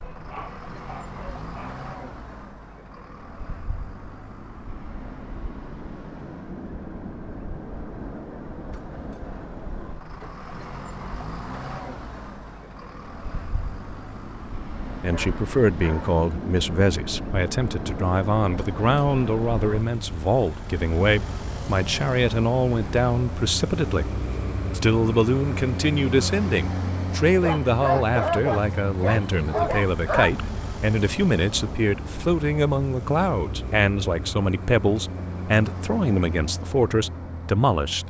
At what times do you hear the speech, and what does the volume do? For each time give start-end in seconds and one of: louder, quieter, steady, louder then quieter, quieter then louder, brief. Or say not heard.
15.0-38.0 steady.